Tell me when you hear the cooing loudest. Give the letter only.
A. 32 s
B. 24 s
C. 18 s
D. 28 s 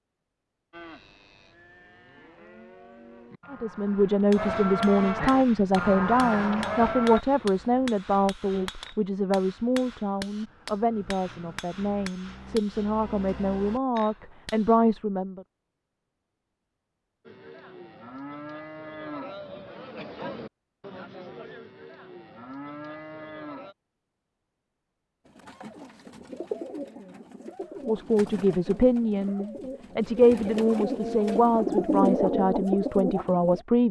A.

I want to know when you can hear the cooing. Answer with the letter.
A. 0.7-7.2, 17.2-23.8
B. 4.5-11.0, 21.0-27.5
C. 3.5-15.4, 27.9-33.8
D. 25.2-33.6
D.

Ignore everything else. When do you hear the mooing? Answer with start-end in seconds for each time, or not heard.
0.7-7.2, 17.2-23.8.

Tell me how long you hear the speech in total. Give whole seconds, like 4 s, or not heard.
18 s.